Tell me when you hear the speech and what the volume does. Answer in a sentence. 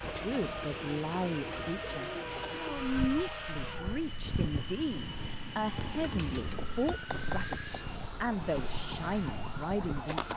The speech can be heard from 0.0 to 10.3 s, at a steady volume.